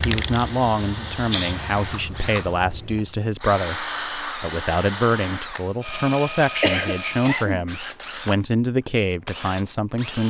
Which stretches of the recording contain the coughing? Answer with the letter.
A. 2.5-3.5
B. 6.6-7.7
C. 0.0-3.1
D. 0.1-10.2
B.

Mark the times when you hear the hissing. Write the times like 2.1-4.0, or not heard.
0.0-3.1.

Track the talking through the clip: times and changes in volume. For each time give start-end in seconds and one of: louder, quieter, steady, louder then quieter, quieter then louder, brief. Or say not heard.
0.1-10.2 steady.